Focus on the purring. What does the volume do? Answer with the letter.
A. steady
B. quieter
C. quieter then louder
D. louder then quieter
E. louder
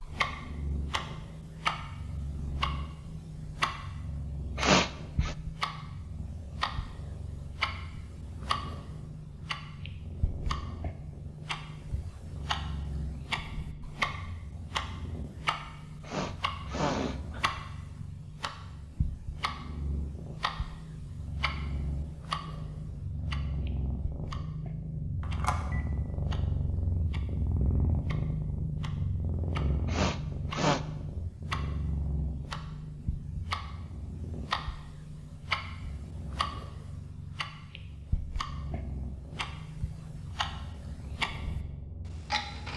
D.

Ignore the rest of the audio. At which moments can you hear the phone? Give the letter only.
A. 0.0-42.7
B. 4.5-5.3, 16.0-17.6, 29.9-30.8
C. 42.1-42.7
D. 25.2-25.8
D.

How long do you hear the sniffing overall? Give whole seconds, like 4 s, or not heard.
3 s.